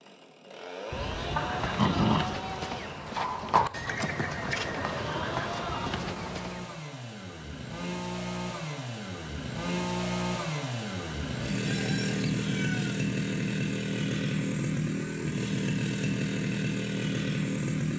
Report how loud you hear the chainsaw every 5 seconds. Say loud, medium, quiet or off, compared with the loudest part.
medium, medium, loud, loud.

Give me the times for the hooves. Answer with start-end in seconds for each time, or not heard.
1.1-6.8.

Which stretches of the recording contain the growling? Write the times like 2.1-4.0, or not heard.
0.9-2.3.